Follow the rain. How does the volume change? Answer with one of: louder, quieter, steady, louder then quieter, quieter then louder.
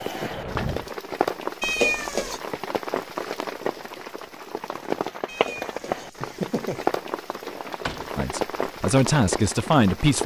steady.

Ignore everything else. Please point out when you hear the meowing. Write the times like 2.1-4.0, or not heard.
1.6-2.4, 5.2-6.8.